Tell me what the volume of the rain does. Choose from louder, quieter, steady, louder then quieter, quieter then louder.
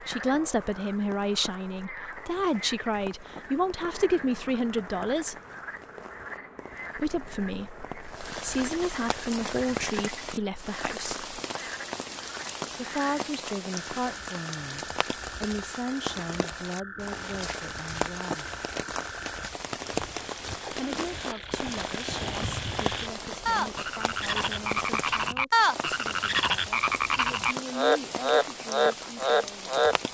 louder.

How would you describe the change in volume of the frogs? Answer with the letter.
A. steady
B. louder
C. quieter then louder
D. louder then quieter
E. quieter
B.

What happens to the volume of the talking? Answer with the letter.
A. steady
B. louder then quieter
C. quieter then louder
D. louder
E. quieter
E.